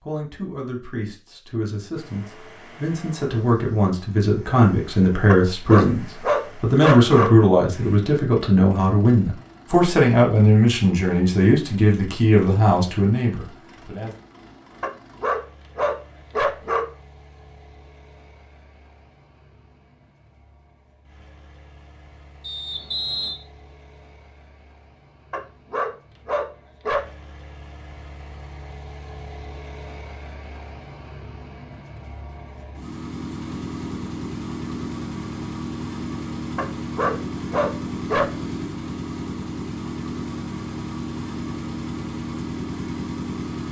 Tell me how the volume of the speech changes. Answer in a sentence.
The loudness of the speech goes up.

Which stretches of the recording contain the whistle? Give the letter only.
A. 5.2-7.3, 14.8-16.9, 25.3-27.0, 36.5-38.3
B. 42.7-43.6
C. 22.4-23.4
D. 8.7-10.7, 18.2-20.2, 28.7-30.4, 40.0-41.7
C.